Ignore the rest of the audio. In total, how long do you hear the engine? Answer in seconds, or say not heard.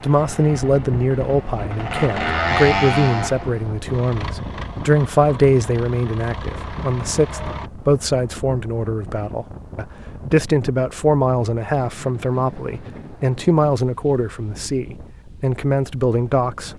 8 s.